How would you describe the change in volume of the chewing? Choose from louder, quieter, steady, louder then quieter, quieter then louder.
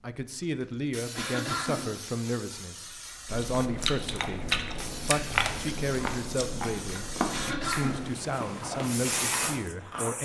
quieter.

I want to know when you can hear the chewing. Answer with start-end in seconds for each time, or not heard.
3.2-10.2.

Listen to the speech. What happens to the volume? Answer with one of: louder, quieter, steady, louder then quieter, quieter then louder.
steady.